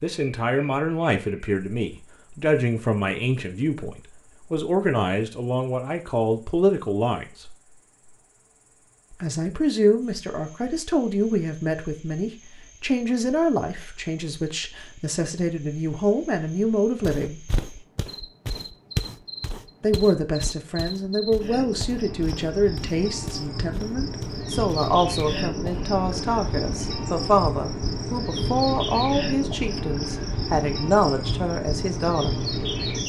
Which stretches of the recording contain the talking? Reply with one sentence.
You can hear the talking from 0.0 to 7.5 s, from 9.1 to 17.4 s and from 19.8 to 32.5 s.